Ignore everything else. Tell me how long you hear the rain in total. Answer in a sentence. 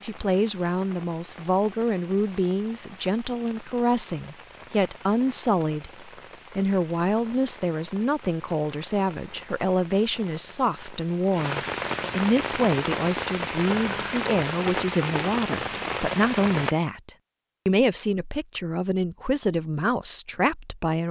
You can hear the rain for 17 seconds altogether.